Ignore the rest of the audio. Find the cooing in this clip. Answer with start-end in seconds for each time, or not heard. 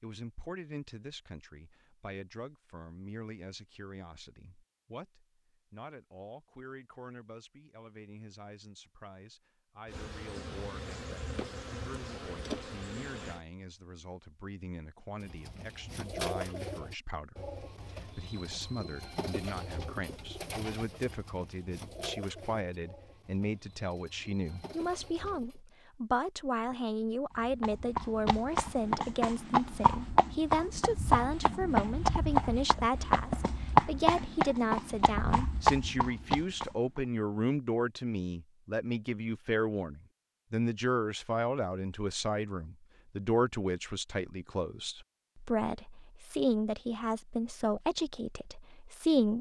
15.2-25.6.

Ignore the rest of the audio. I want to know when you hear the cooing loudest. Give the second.
16 s.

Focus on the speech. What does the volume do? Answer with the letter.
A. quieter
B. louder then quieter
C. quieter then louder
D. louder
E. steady
D.